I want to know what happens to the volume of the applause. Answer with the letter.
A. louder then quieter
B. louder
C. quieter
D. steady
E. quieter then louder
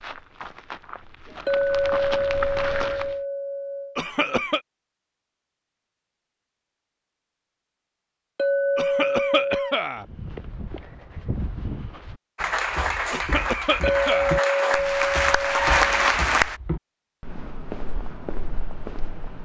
B.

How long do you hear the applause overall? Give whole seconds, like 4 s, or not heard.
4 s.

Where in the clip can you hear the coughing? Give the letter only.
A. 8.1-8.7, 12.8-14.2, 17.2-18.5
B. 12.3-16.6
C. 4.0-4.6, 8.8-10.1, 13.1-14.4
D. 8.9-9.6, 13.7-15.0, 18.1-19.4
C.